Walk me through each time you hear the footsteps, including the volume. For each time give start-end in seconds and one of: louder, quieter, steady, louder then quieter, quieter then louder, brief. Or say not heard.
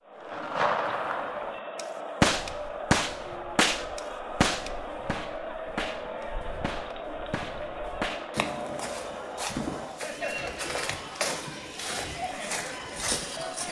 2.3-13.6 louder.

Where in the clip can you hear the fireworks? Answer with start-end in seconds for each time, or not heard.
0.2-9.9.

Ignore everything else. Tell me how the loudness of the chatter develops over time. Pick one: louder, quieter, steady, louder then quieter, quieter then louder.
steady.